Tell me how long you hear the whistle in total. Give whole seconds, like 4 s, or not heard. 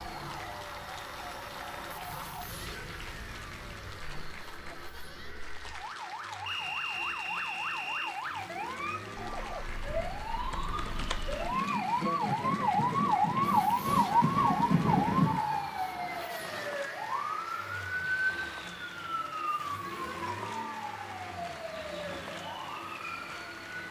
2 s.